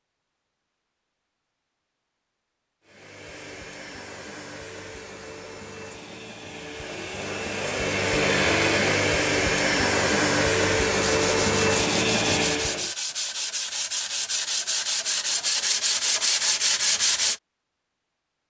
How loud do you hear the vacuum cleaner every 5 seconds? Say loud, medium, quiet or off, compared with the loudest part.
quiet, loud, loud, off.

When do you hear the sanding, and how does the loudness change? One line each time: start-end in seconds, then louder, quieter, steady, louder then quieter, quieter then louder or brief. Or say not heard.
10.9-17.4 louder.